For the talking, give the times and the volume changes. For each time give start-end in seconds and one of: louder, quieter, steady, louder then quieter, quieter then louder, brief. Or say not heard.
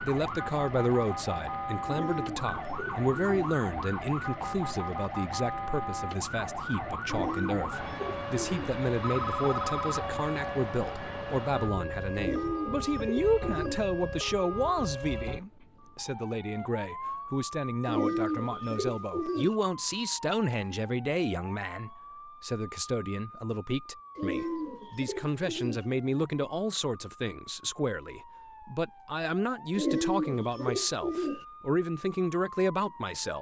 0.0-33.3 steady.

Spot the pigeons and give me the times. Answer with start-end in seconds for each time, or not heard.
1.9-3.5, 7.0-8.8, 12.2-13.8, 17.9-19.6, 24.1-25.9, 29.8-31.4.